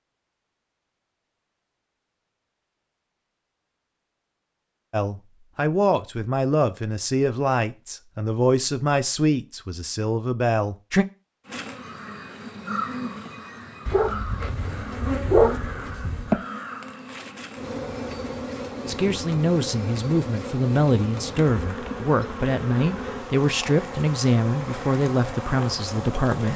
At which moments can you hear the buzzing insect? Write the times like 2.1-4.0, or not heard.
11.4-26.5.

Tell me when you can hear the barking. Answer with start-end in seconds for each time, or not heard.
13.8-16.4.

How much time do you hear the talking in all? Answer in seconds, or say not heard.
14 s.